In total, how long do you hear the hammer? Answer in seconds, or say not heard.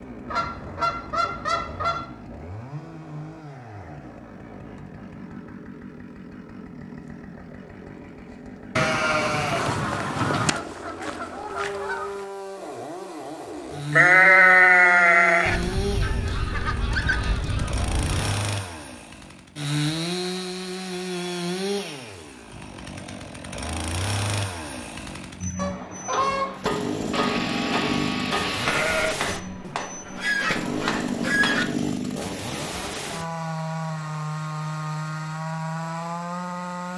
6 s.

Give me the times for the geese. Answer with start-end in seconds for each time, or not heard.
0.2-2.1, 9.7-12.2, 15.4-18.4, 25.6-26.6, 29.6-31.6.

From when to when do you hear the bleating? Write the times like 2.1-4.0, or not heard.
8.8-10.5, 13.9-15.6, 27.1-29.1.